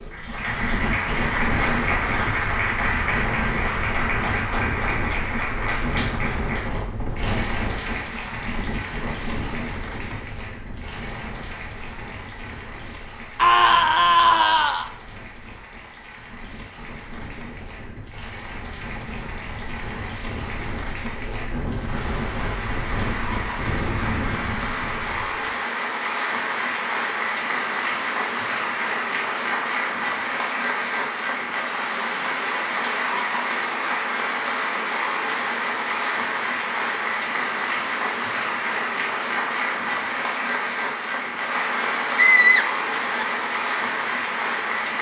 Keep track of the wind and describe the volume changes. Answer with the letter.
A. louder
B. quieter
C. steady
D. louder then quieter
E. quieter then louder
E.